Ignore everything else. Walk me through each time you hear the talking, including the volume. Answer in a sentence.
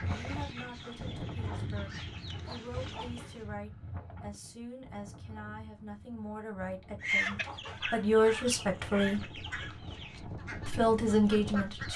The talking can be heard from 0.0 to 9.3 s, getting louder; and briefly from 10.7 to 11.9 s.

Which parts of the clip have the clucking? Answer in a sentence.
The clucking can be heard from 0.0 to 3.5 s and from 7.0 to 11.9 s.